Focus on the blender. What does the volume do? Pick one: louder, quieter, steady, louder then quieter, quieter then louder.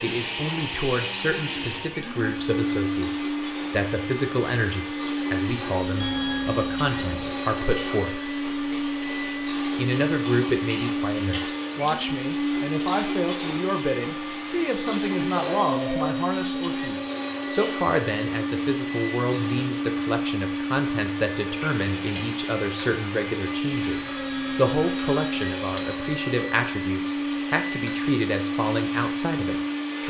steady.